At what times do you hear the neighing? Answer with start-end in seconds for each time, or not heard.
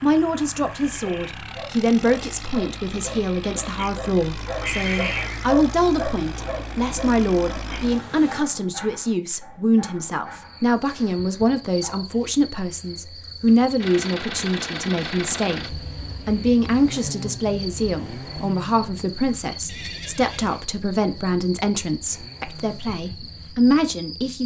4.7-5.5, 19.6-20.6.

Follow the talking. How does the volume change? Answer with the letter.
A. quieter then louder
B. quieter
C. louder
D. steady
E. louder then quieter
D.